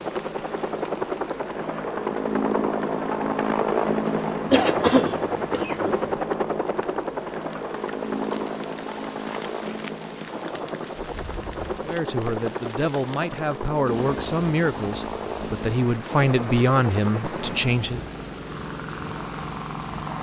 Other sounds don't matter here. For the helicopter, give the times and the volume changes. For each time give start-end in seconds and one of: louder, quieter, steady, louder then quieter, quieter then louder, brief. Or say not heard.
0.0-20.1 quieter.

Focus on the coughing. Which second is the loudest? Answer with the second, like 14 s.
5 s.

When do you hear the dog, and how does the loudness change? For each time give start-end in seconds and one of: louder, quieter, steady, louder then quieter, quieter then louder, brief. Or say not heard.
not heard.